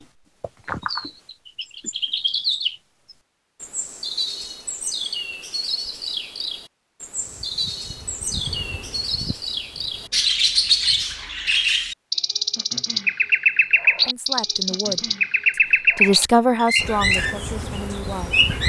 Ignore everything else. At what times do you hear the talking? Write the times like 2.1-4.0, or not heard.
14.1-18.4.